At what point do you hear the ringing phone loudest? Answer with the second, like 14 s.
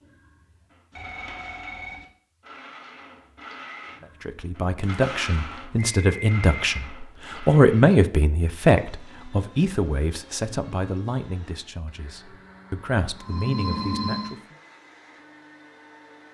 14 s.